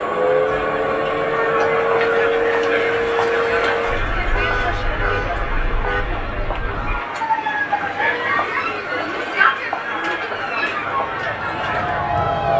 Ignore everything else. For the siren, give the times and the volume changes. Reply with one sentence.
You can hear the siren from 0.0 to 12.5 s, getting quieter.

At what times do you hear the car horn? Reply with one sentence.
You can hear the car horn from 4.2 to 6.0 s.